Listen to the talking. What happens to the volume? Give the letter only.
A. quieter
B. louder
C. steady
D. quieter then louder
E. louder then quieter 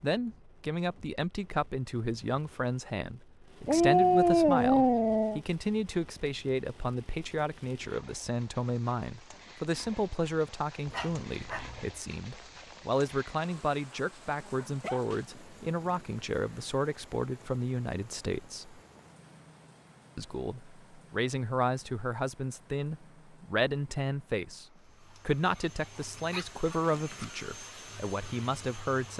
C.